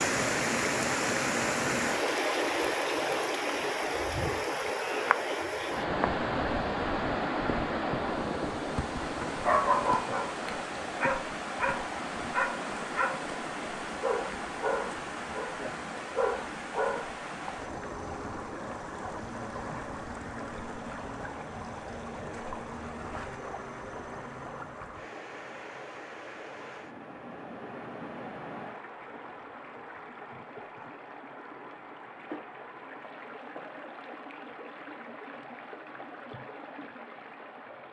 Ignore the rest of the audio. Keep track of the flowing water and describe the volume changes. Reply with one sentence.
The volume of the flowing water goes down.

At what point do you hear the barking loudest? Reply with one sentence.
The loudest moment of the barking is at 10 seconds.